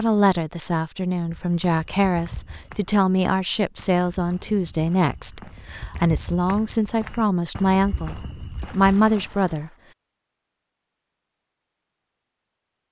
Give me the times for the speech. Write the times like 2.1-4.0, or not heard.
0.0-9.7.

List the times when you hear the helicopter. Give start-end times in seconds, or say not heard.
not heard.